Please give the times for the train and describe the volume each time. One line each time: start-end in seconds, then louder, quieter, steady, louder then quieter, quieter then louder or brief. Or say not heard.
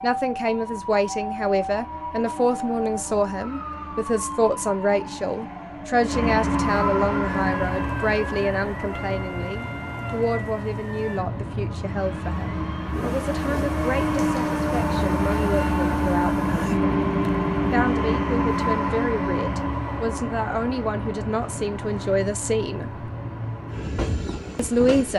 0.0-25.1 louder then quieter.